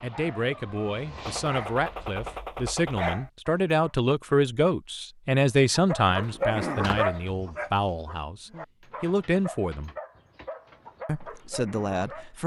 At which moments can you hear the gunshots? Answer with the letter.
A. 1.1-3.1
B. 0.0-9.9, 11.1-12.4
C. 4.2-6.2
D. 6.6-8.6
A.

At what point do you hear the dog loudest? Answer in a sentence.
The loudest moment of the dog is at 7 seconds.